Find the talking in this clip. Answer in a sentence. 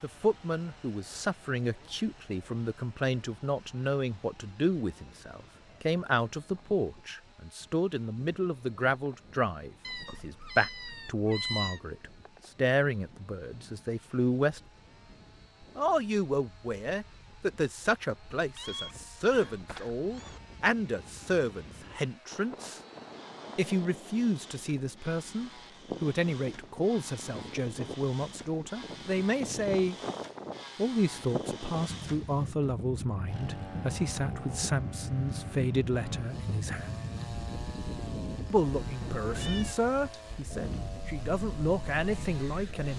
The talking can be heard from 0.0 to 14.6 s, from 15.8 to 22.8 s, from 23.6 to 29.9 s, from 30.8 to 37.0 s and from 38.5 to 42.9 s.